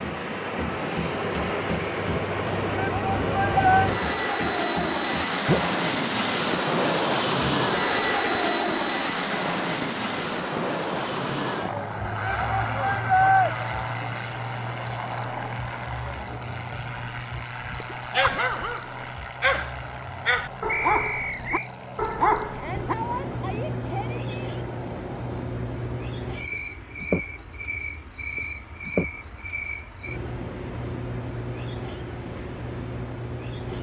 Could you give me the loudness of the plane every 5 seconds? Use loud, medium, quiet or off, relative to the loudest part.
loud, loud, medium, medium, quiet, quiet, quiet.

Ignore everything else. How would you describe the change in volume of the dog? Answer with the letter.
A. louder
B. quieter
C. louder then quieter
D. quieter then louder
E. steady
D.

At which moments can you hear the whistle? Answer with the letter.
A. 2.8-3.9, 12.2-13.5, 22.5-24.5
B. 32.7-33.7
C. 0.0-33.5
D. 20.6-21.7
D.